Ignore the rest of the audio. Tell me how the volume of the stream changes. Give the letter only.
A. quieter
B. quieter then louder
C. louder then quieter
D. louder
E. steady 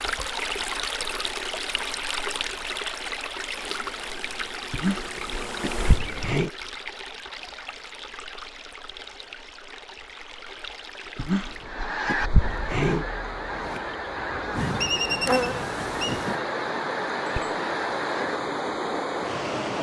B.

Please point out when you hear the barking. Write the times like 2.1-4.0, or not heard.
4.7-6.5, 11.2-13.1.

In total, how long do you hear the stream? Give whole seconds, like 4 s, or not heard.
20 s.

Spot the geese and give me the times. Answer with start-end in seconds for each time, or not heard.
11.7-18.4.